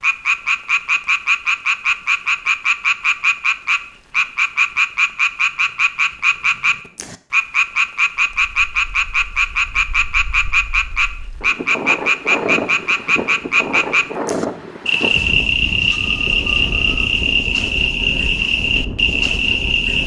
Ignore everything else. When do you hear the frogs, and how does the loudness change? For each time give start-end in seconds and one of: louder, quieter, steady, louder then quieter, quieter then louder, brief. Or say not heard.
0.0-20.0 steady.